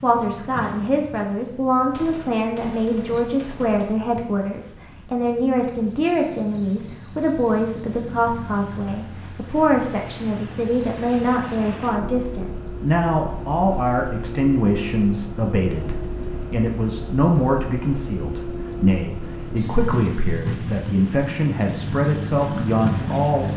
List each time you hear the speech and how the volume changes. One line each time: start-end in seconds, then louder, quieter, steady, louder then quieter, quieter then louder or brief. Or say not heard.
0.0-23.5 steady.